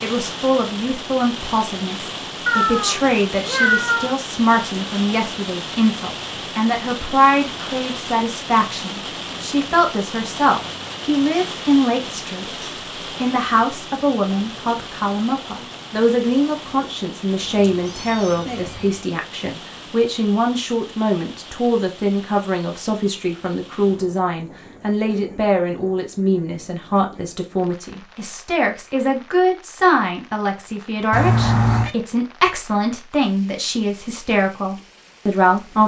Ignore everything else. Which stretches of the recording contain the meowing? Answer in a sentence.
The meowing can be heard from 2.5 to 4.1 s, from 17.4 to 19.0 s and from 31.1 to 31.9 s.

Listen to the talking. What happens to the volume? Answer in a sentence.
The volume of the talking stays about the same.